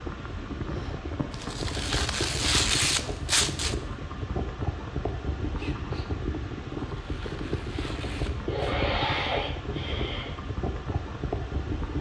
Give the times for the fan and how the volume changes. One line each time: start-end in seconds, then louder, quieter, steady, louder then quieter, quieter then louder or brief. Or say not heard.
0.0-11.9 steady.